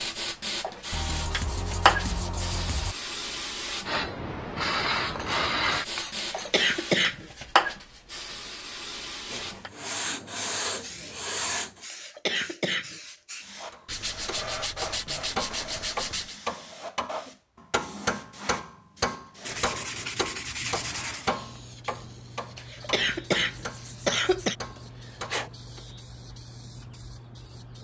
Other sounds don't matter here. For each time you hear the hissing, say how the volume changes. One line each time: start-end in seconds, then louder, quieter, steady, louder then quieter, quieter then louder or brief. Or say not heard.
0.0-27.7 quieter.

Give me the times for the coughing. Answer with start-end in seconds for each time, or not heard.
6.3-7.5, 11.9-13.2, 22.6-24.6.